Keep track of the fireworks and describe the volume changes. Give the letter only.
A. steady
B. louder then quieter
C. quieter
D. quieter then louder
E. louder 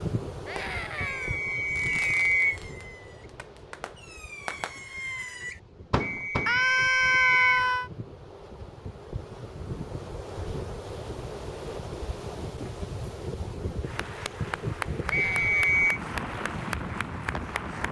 D.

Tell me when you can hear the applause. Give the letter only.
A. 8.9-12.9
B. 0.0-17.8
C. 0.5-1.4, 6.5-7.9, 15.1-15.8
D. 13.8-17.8
D.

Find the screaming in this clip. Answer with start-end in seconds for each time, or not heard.
0.5-1.4, 6.5-7.9, 15.1-15.8.